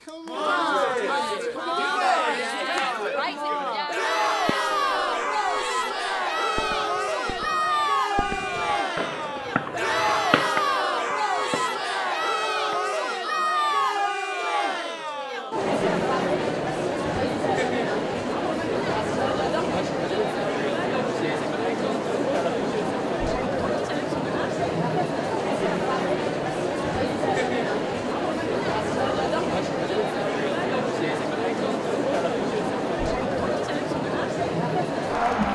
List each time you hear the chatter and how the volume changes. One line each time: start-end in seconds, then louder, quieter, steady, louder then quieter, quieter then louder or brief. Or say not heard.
0.1-35.4 steady.